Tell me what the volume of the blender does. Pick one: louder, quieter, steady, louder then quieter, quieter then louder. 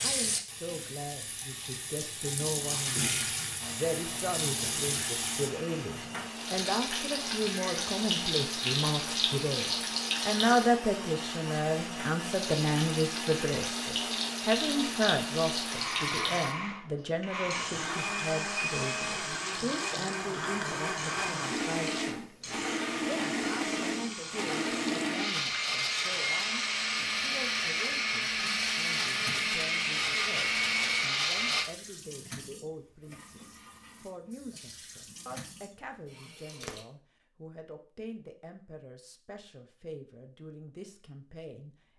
louder.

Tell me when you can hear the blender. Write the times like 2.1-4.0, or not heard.
3.6-31.6.